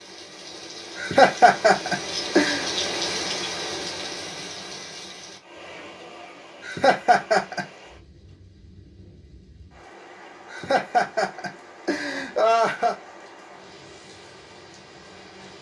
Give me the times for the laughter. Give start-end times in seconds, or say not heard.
0.9-2.6, 6.6-7.7, 10.5-12.9.